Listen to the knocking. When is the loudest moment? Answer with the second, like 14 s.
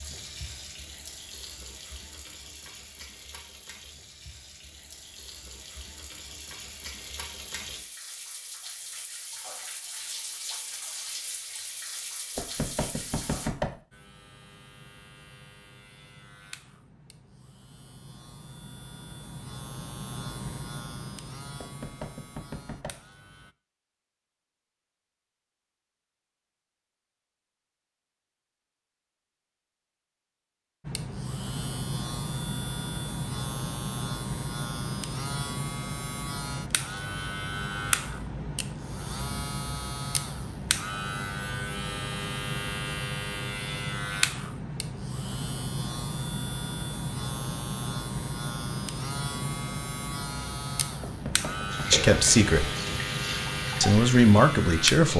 13 s.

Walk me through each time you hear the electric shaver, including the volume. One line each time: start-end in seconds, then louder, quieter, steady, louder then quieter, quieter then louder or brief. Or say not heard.
13.9-23.6 louder then quieter
30.8-55.1 steady.